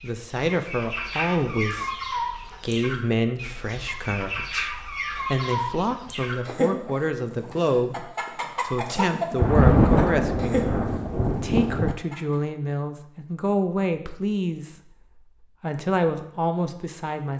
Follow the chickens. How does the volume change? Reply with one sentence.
The loudness of the chickens stays about the same.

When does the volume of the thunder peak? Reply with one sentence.
The loudest moment of the thunder is at 10 seconds.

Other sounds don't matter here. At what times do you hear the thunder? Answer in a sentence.
The thunder can be heard from 9.3 to 11.9 s.